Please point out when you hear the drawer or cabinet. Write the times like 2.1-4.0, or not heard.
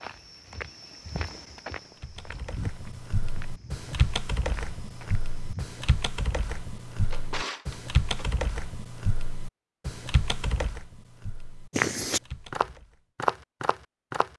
6.8-8.2.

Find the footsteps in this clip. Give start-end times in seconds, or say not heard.
0.0-5.8, 11.7-14.3.